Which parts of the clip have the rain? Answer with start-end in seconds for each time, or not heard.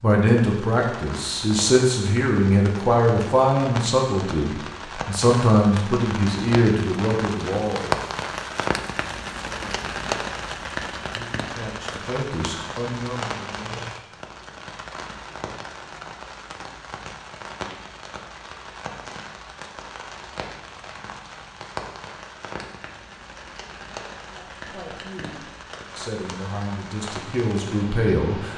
0.0-28.5.